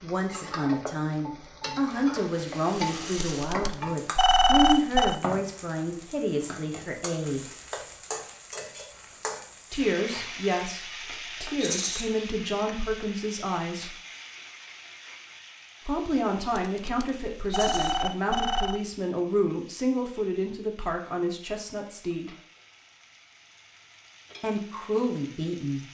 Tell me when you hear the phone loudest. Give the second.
5 s.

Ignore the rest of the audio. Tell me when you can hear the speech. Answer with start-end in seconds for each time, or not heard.
0.0-7.5, 9.7-13.9, 15.8-22.4, 24.4-25.8.